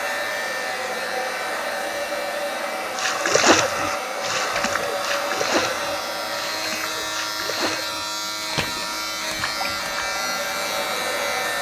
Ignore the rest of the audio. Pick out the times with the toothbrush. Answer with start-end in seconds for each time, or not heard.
not heard.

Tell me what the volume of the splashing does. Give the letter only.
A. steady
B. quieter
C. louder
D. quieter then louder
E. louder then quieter
B.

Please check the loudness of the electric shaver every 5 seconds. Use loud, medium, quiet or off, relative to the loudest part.
medium, loud, loud.